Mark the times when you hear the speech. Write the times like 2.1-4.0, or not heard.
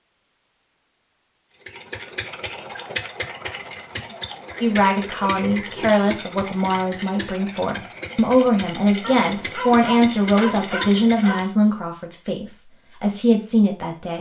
4.6-14.1.